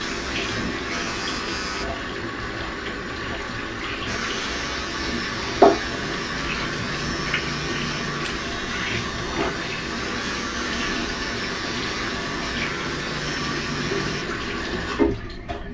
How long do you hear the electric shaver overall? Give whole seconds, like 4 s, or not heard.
12 s.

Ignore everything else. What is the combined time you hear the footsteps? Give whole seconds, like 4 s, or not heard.
not heard.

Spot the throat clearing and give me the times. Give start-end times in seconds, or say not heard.
not heard.